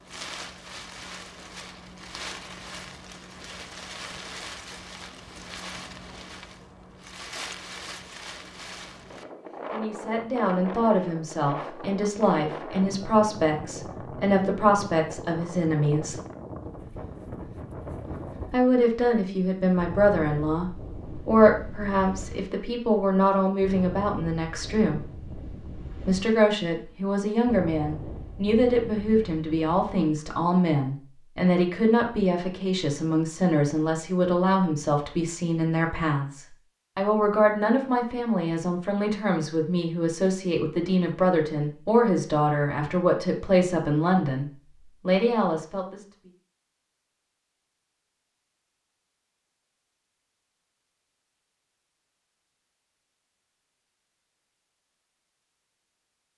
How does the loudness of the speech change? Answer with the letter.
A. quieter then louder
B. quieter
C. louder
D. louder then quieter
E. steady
E.